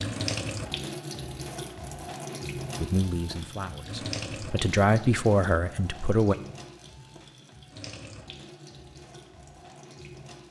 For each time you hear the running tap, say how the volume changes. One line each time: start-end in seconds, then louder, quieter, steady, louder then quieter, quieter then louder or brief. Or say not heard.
0.0-10.4 quieter.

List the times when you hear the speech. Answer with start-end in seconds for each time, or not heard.
2.8-6.3.